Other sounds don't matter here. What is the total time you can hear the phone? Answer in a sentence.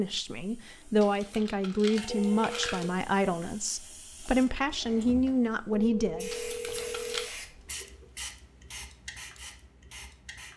You can hear the phone for 3 seconds altogether.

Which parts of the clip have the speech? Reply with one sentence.
The speech can be heard from 0.0 to 6.4 s.